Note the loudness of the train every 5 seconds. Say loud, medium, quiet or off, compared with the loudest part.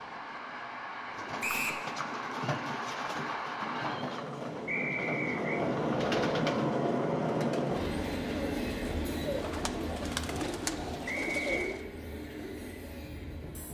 medium, loud, medium.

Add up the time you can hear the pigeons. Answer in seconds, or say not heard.
11 s.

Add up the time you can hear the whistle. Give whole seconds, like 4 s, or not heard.
2 s.